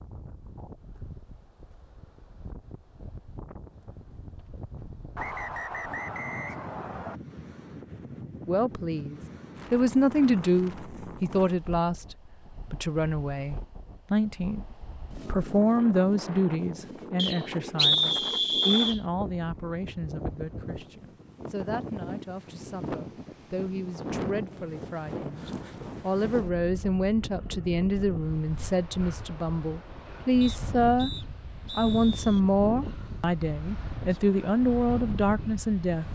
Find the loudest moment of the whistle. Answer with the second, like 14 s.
18 s.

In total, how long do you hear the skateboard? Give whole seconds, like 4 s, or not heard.
not heard.